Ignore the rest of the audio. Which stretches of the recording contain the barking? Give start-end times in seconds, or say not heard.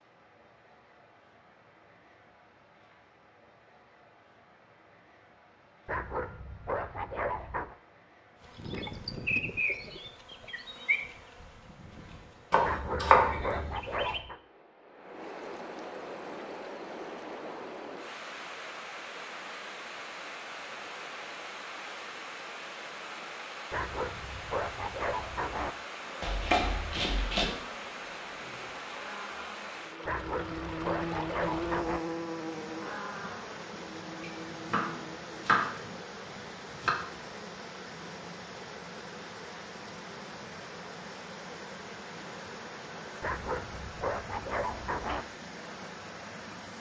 5.8-7.8, 12.6-14.4, 23.7-25.8, 30.1-32.0, 43.2-45.2.